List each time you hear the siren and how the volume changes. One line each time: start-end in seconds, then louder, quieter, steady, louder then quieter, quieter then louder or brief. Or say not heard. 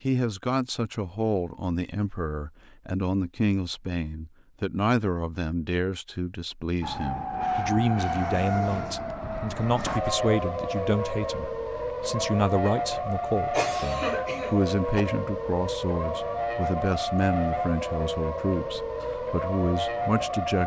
6.8-20.6 steady.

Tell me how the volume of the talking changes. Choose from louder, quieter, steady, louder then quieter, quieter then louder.
steady.